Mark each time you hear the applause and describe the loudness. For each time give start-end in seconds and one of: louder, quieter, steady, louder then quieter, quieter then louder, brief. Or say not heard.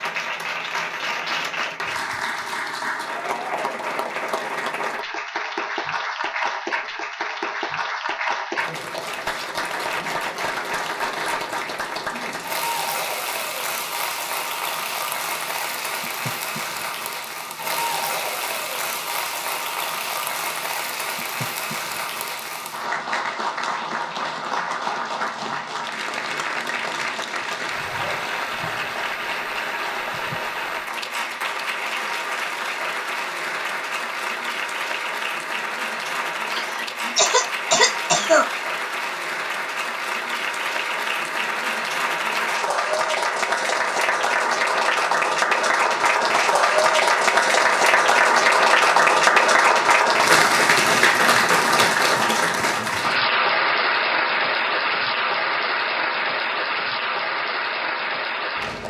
0.0-58.8 louder.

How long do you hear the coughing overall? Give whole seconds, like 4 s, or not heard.
2 s.